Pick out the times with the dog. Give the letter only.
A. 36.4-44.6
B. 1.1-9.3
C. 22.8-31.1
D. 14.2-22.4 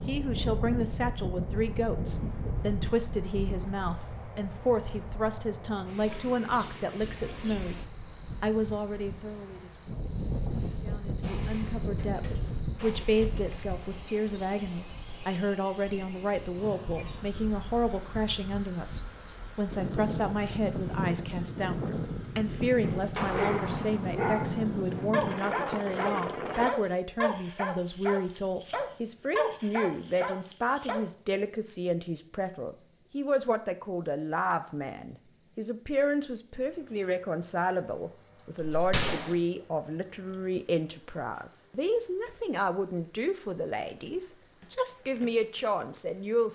C.